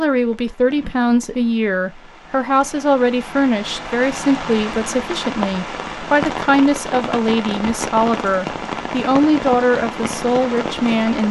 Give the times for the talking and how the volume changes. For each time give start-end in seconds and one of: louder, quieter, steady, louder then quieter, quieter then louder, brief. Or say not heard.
0.0-11.2 steady.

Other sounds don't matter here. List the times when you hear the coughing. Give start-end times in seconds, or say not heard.
not heard.